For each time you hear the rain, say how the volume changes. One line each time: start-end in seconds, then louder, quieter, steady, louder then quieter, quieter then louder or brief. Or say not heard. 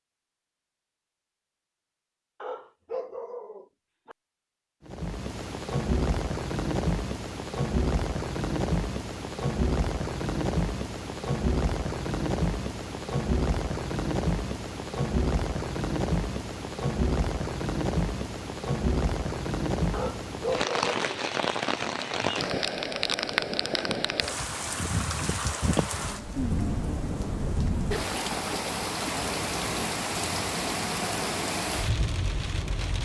4.8-33.0 steady.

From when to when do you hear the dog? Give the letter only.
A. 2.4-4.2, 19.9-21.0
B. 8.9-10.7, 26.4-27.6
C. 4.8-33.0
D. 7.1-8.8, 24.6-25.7
A.